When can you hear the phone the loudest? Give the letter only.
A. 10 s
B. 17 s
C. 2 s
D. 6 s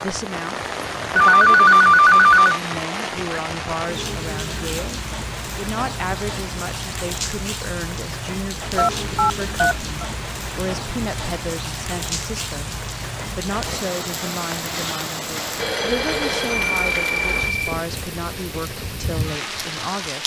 C.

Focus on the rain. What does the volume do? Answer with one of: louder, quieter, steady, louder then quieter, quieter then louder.
steady.